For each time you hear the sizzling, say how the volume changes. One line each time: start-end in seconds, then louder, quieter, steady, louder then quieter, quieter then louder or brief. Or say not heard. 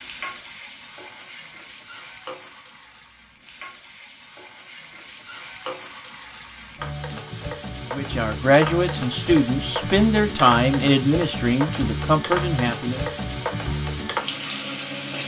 0.0-15.2 louder.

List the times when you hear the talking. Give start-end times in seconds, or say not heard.
7.9-13.0.